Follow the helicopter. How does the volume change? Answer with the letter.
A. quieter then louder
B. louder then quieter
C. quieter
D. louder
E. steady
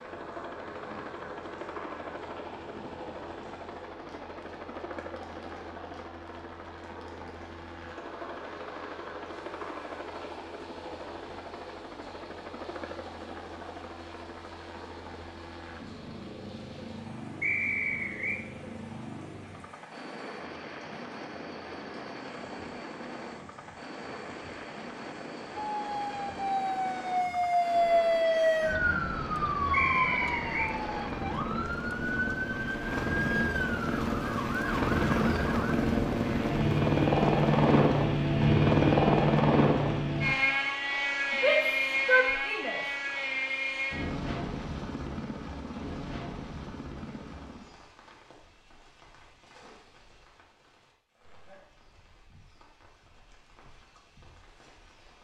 D.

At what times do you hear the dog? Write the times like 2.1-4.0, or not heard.
not heard.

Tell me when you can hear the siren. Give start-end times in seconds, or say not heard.
25.6-35.8.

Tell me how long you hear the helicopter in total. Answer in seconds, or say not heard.
48 s.